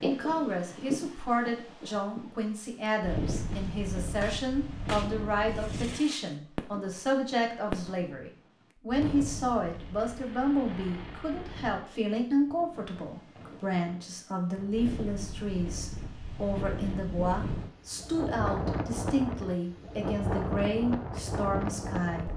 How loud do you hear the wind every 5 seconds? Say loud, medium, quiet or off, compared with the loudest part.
loud, medium, quiet, loud, loud.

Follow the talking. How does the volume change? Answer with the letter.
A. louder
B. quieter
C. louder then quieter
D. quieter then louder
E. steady
E.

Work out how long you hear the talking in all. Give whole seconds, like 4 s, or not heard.
22 s.